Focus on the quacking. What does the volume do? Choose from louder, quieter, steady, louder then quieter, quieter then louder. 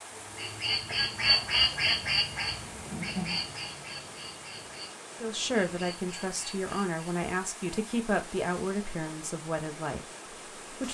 quieter.